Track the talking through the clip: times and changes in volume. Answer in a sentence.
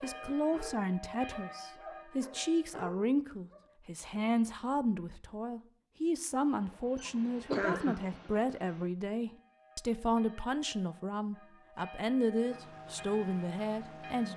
The talking can be heard from 0.0 to 14.3 s, at a steady volume.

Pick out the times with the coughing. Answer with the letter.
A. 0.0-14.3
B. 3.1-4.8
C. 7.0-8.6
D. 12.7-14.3
C.